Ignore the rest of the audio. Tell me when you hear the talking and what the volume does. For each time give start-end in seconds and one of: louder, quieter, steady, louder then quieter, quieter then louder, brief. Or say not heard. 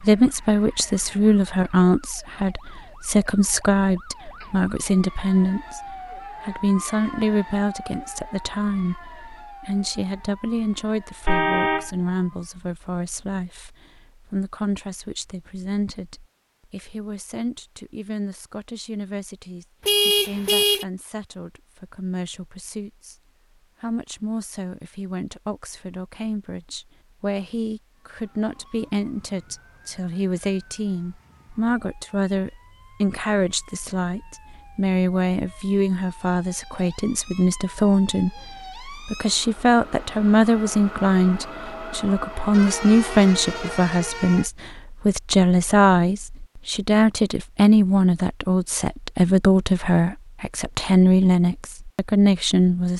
0.0-23.1 quieter
23.8-52.9 louder.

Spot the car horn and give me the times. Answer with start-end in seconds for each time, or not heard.
11.2-11.9, 19.9-20.9, 42.5-44.5.